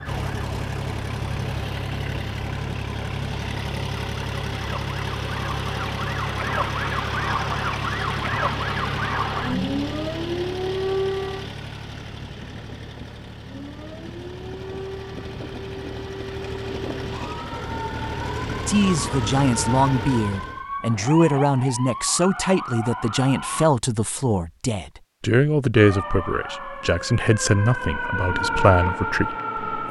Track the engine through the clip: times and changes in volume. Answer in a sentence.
You can hear the engine from 0.0 to 20.6 s, getting quieter then louder.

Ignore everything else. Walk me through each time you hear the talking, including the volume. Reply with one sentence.
The talking can be heard from 18.6 to 29.8 s, at a steady volume.